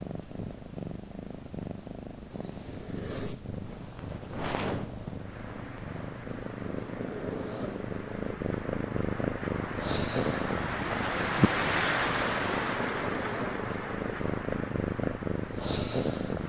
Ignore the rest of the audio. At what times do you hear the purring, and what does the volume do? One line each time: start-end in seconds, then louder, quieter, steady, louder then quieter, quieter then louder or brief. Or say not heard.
0.0-16.4 louder.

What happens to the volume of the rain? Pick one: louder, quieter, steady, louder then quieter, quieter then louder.
louder then quieter.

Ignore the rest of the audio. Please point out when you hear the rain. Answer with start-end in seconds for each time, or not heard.
5.1-16.4.